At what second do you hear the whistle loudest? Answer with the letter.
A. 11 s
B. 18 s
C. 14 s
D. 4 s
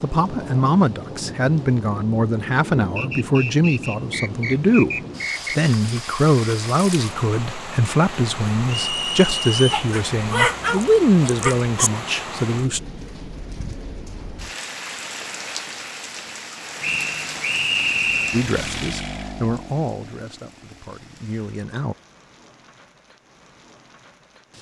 B.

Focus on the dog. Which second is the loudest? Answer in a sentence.
The loudest moment of the dog is at 11 seconds.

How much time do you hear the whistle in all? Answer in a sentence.
You can hear the whistle for 5 seconds altogether.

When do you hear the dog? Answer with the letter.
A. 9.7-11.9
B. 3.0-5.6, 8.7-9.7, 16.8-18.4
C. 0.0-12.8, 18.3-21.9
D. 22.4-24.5
A.